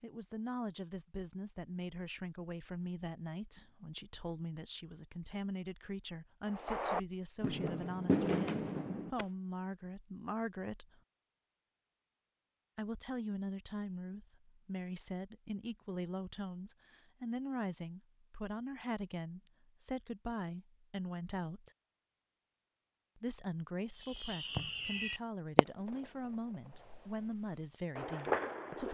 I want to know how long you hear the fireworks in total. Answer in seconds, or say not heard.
7 s.